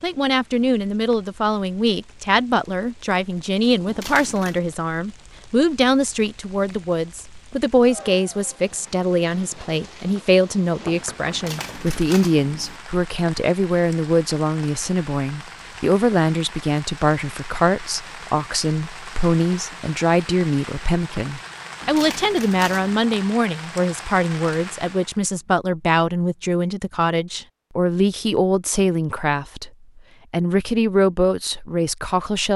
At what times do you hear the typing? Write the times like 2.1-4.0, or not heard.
not heard.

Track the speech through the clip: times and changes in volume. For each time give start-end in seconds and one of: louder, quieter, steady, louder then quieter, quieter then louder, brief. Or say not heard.
0.0-29.7 steady
30.3-32.5 brief.